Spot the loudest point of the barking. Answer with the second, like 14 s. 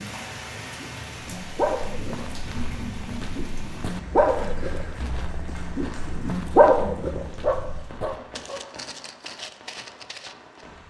7 s.